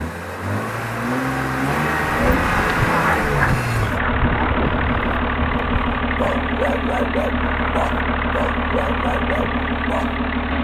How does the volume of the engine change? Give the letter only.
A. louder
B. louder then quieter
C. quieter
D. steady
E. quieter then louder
D.